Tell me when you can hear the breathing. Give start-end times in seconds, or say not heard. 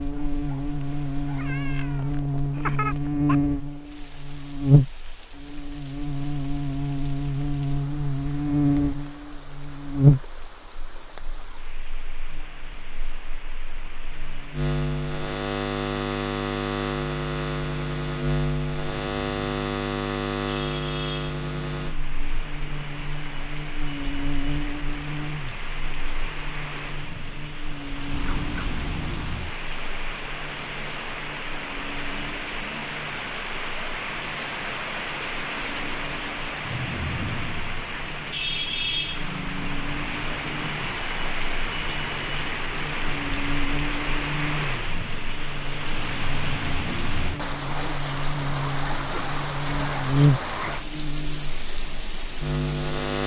not heard.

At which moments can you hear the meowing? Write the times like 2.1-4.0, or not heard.
1.4-3.4, 28.1-29.5.